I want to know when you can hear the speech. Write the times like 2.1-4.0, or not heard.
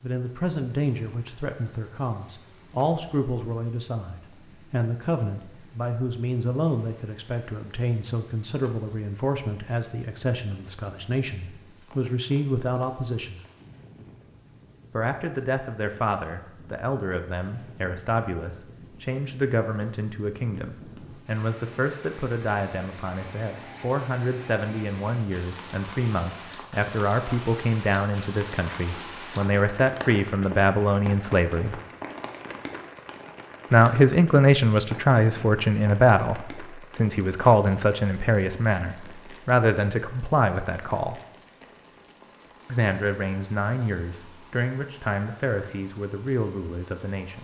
0.0-13.4, 14.9-31.8, 33.7-41.2, 42.6-47.3.